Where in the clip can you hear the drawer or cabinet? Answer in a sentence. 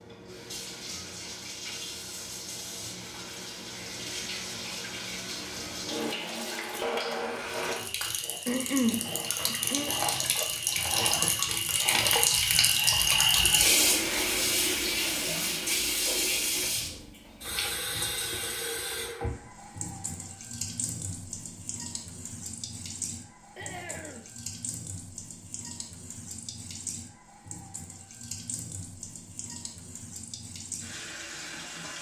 You can't hear the drawer or cabinet here.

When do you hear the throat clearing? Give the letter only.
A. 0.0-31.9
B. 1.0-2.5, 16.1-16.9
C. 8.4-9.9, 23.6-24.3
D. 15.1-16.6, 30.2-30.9
C.